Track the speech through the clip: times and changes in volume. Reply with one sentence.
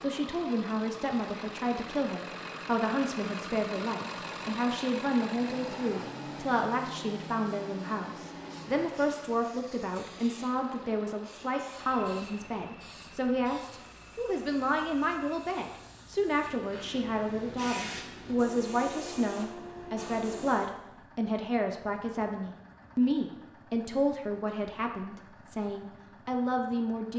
You can hear the speech from 0.0 to 27.1 s, at a steady volume.